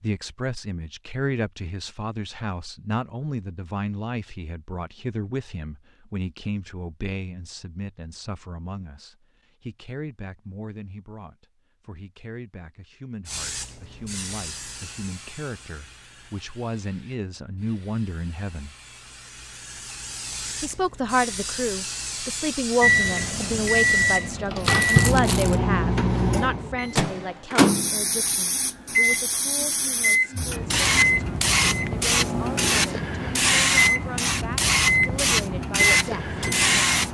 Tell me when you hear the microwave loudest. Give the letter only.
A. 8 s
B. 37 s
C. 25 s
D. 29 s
C.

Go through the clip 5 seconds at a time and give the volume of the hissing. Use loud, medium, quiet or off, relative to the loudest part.
off, off, quiet, quiet, medium, medium, loud, loud.